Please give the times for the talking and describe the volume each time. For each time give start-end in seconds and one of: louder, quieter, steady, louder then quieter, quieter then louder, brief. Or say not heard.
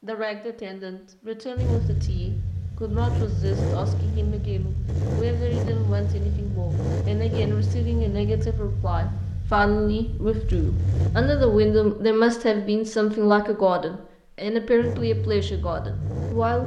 0.0-16.6 louder.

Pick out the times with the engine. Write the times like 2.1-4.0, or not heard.
1.6-11.9, 14.8-16.6.